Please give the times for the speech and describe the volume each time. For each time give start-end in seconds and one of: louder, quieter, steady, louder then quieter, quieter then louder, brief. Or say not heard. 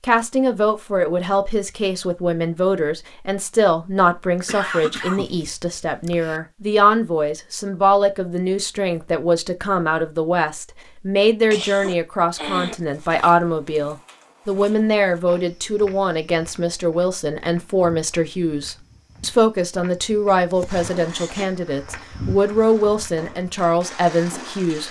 0.0-24.8 steady.